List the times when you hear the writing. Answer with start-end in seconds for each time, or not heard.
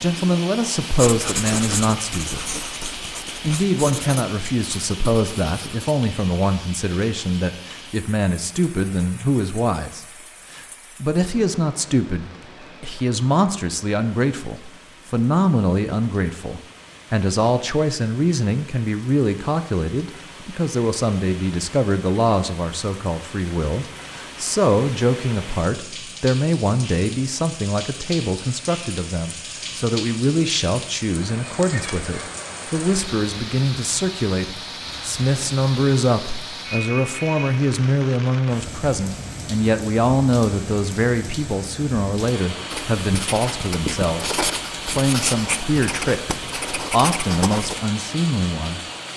0.8-6.0, 42.7-47.8.